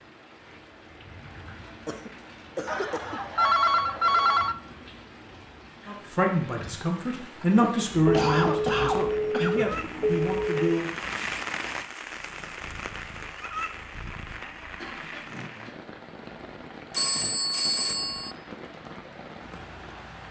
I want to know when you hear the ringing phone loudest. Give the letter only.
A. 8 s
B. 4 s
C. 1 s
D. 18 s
B.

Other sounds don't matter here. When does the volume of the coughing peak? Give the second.
8 s.